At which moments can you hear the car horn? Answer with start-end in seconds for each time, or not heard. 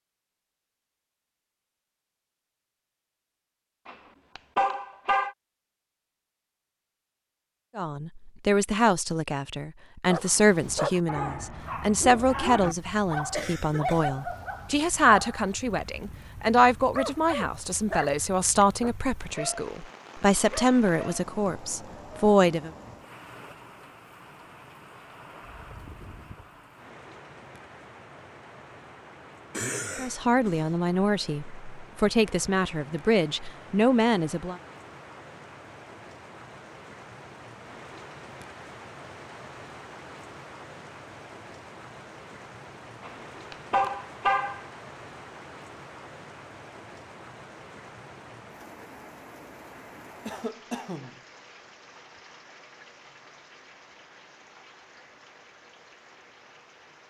3.9-5.3, 43.0-44.6.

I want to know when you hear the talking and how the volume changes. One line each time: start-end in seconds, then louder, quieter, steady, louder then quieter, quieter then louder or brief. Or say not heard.
7.8-22.7 steady
29.9-34.5 quieter then louder.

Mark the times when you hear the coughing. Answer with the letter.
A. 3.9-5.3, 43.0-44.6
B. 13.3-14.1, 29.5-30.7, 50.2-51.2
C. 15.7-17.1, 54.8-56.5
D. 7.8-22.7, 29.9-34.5
B.